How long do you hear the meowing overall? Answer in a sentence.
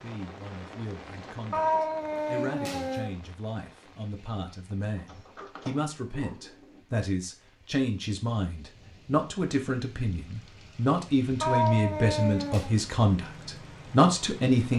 The meowing can be heard for 3 seconds in total.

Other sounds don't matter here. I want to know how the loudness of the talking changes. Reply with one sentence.
The volume of the talking goes up.